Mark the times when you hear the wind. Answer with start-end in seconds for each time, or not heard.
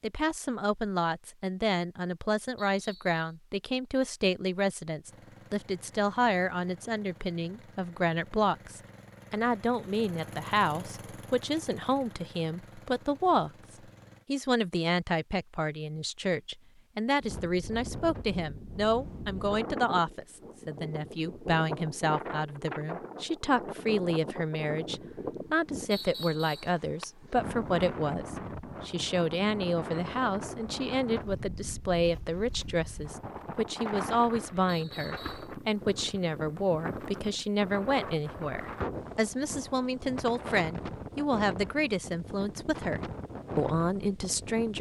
17.2-44.7.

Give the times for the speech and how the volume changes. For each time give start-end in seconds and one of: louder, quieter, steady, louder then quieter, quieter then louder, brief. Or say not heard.
0.0-13.5 steady
14.2-44.7 steady.